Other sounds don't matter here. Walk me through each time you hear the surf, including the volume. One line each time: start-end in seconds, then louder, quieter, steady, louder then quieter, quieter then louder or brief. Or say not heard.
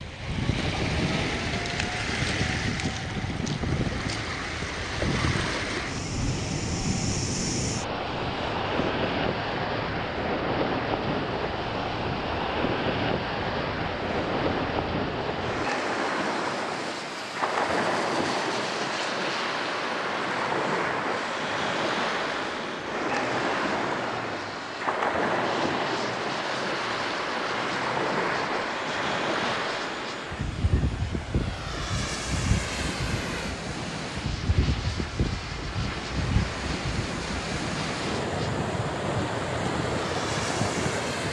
0.0-41.2 steady.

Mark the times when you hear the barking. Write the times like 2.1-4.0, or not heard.
not heard.